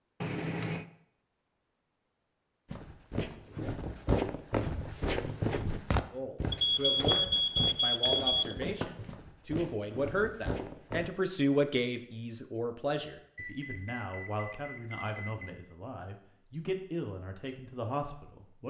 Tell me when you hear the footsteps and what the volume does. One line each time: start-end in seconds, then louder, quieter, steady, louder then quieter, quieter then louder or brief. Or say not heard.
2.7-11.1 quieter.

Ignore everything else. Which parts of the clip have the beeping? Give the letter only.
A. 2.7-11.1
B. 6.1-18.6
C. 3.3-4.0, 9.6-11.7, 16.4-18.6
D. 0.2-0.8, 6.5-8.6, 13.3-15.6
D.